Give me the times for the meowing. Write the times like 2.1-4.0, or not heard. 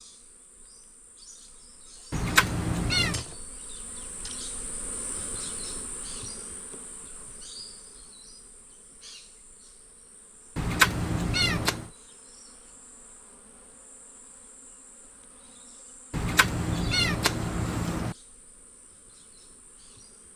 2.1-3.2, 10.6-11.9, 16.1-18.1.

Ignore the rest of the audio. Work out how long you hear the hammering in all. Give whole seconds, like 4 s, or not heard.
not heard.